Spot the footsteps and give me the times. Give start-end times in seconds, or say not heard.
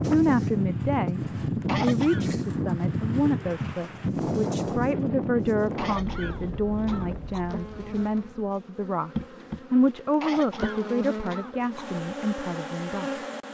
not heard.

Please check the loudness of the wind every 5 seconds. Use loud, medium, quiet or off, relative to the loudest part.
loud, medium, off.